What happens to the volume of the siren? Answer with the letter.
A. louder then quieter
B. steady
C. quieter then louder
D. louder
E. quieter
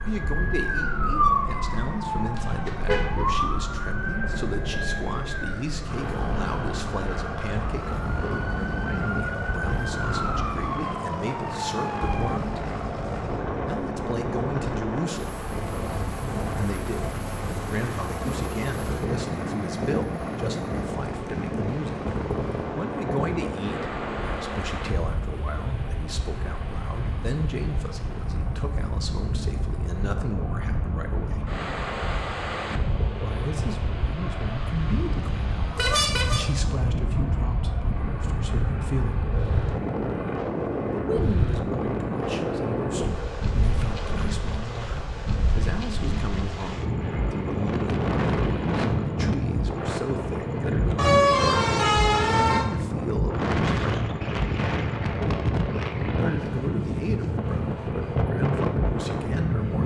C.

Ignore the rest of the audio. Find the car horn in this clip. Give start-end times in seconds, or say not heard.
2.4-3.2, 35.8-36.5, 51.0-52.6.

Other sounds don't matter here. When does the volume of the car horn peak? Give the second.
51 s.